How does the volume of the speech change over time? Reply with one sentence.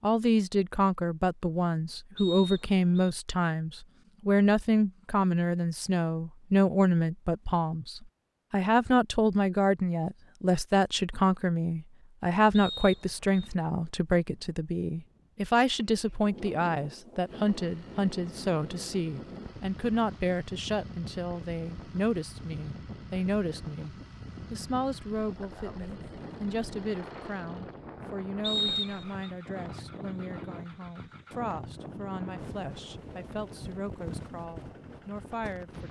The volume of the speech goes down.